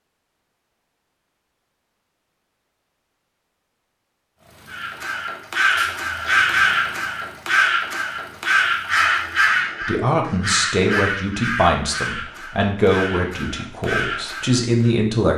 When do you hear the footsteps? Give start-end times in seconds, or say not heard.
not heard.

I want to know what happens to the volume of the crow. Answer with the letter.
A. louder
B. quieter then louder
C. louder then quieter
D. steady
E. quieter
E.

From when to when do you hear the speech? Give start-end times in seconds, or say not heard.
9.8-15.3.